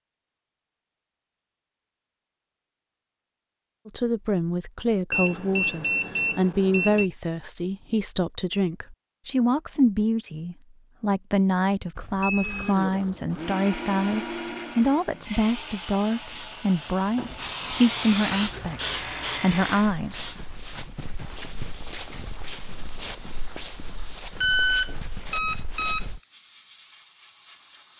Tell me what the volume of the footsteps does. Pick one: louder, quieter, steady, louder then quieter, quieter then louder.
steady.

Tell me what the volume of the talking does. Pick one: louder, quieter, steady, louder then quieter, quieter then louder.
steady.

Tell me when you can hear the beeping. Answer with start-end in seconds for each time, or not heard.
5.1-7.1, 11.9-12.8, 24.4-26.1.